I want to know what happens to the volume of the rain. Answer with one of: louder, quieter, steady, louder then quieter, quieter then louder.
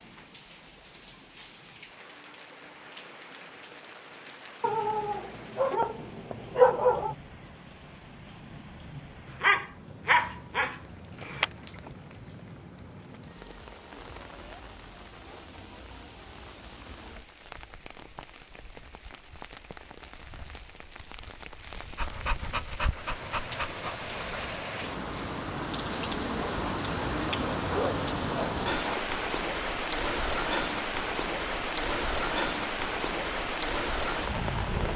louder.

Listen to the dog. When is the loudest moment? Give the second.
7 s.